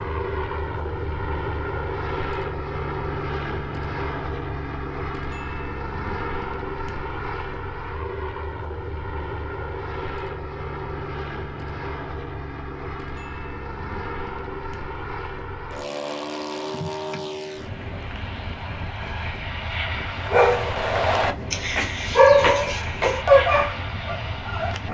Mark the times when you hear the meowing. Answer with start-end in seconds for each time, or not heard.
not heard.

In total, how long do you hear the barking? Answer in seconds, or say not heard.
5 s.